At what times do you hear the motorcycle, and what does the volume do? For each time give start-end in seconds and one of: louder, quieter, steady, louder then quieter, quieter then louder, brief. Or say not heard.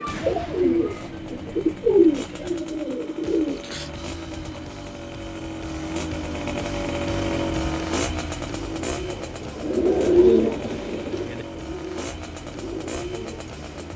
0.0-13.9 louder then quieter.